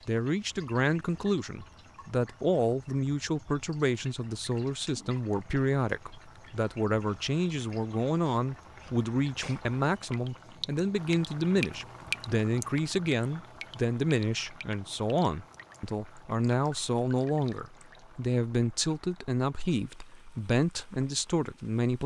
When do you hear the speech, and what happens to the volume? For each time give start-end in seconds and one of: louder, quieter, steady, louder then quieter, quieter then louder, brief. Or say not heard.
0.1-22.0 steady.